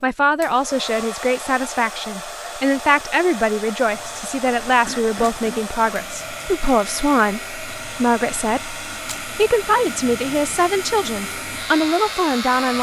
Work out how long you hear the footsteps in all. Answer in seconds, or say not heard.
not heard.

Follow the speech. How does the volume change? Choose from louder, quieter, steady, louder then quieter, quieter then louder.
steady.